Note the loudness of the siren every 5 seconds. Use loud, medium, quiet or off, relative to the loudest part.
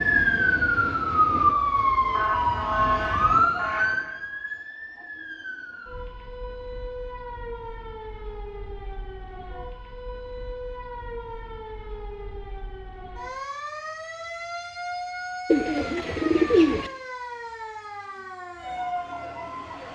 loud, quiet, quiet, quiet.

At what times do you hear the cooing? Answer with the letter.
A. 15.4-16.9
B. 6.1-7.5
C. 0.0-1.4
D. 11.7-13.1
A.